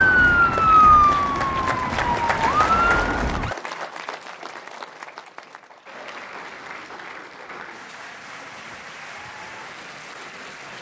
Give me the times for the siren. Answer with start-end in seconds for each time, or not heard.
0.0-3.5.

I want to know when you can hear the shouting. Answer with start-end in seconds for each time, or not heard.
not heard.